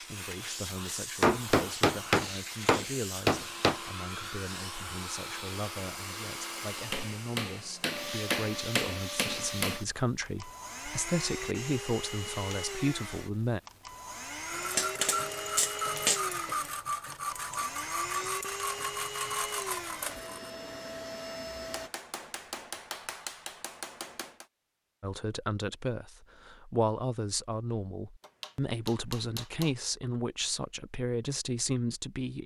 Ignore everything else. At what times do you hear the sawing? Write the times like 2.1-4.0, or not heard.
14.4-20.5.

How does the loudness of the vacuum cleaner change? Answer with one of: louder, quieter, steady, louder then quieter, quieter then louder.
steady.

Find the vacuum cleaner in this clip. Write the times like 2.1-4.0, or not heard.
0.0-21.9.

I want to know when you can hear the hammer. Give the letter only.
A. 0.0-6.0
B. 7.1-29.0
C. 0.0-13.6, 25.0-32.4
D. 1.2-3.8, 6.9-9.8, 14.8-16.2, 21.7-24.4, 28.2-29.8
D.